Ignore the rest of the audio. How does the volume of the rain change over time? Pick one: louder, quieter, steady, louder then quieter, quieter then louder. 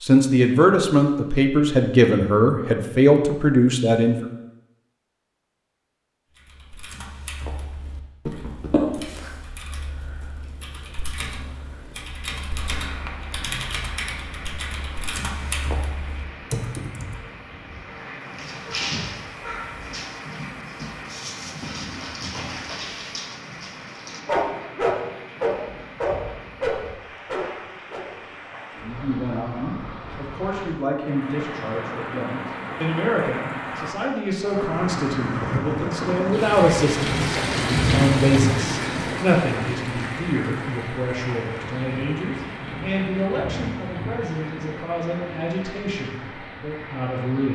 louder then quieter.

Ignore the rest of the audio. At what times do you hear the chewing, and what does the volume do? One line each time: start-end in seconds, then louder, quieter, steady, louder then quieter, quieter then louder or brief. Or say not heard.
not heard.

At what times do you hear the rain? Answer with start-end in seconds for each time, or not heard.
12.4-47.4.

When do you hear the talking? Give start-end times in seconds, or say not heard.
0.0-4.2, 28.8-47.4.